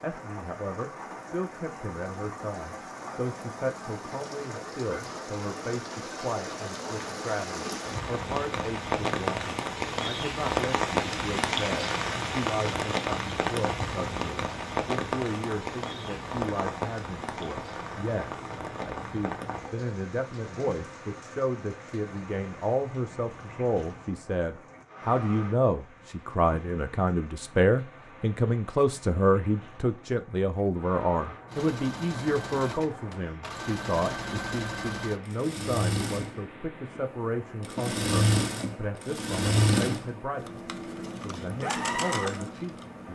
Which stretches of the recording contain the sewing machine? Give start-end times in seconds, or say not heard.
31.4-43.0.